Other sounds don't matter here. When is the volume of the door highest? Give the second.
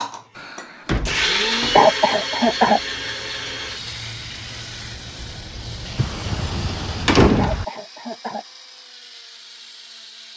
7 s.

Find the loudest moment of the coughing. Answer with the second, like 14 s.
2 s.